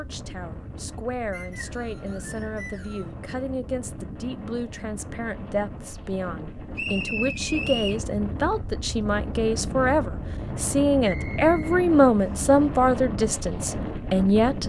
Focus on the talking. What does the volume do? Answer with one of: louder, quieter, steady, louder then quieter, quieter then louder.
louder.